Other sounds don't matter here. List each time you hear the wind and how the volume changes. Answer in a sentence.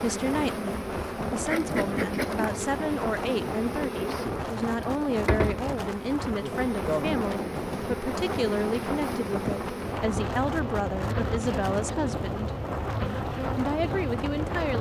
The wind can be heard from 0.0 to 14.7 s, at a steady volume.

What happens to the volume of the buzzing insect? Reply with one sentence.
The loudness of the buzzing insect stays about the same.